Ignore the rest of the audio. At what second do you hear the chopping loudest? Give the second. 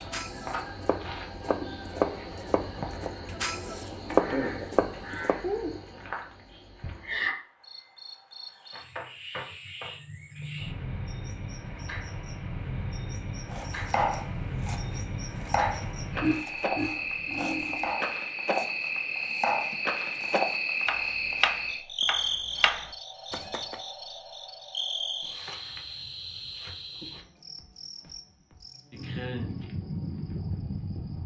4 s.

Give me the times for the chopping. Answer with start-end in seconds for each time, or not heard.
0.0-5.4, 13.5-23.8.